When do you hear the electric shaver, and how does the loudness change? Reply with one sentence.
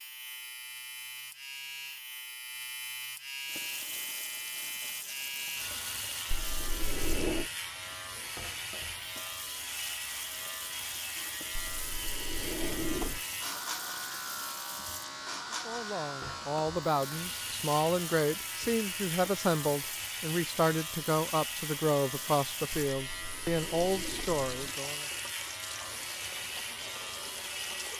You can hear the electric shaver from 0.0 to 27.9 s, at a steady volume.